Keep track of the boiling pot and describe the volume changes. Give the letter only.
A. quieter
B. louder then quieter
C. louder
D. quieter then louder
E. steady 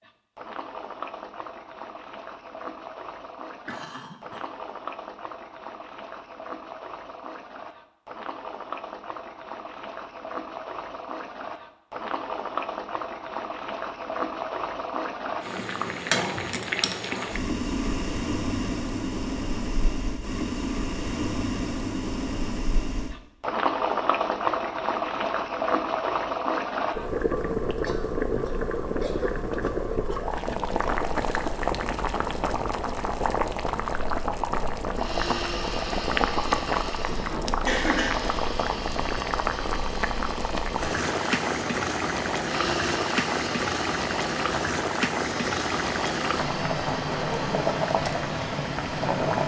C.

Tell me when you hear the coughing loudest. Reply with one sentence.
The volume of the coughing peaks at 38 seconds.